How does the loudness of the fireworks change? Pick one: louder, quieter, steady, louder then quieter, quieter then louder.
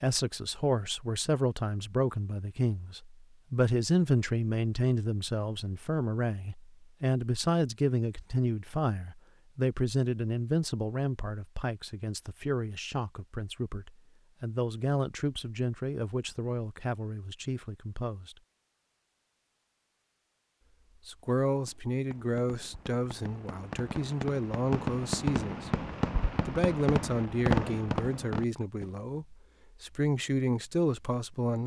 louder.